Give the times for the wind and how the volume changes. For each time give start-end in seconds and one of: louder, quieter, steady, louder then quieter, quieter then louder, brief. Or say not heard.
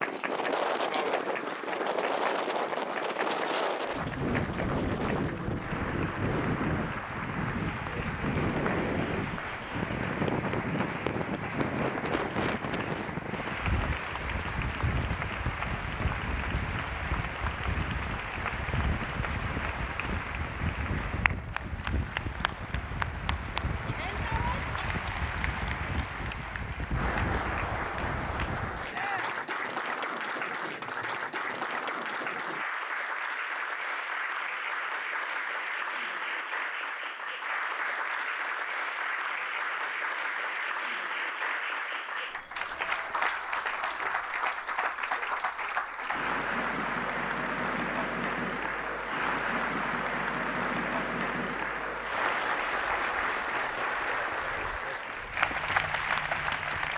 0.0-28.9 quieter.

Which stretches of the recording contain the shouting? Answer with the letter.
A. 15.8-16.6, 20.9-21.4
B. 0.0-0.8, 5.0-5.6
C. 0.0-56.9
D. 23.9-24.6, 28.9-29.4
D.